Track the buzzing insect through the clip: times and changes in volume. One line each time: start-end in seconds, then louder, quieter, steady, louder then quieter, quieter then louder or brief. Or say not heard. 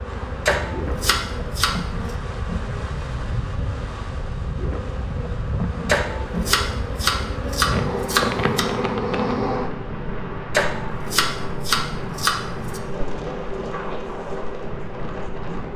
0.0-15.7 louder then quieter.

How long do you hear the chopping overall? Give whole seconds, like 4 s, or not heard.
7 s.